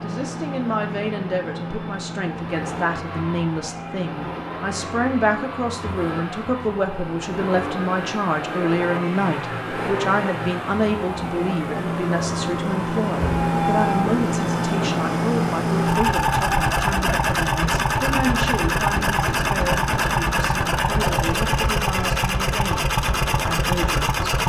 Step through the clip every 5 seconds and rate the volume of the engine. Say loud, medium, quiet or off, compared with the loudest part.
medium, medium, loud, loud, loud.